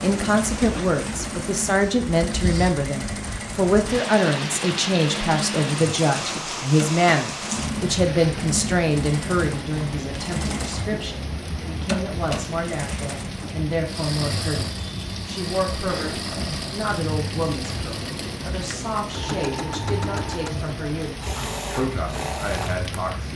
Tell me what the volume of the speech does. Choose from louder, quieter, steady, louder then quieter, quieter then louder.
quieter.